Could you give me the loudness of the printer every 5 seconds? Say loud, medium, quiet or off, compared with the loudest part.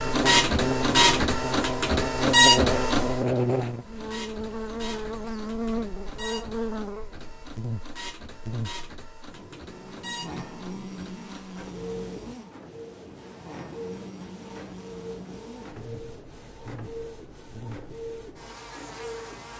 loud, quiet, quiet, quiet.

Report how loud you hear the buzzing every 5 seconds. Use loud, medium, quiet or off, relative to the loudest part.
loud, medium, quiet, quiet.